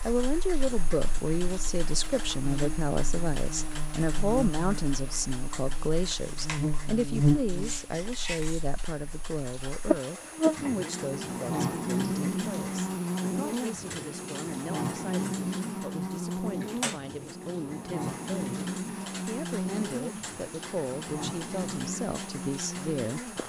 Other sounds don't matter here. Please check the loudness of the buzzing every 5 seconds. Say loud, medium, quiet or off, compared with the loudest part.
medium, loud, loud, loud, medium.